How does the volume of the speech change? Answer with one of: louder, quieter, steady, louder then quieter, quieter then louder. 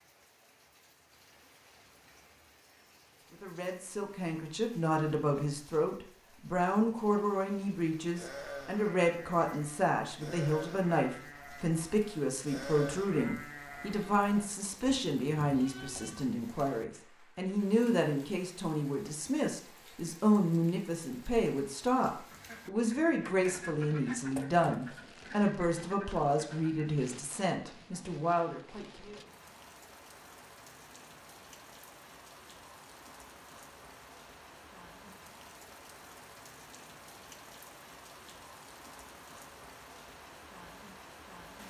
steady.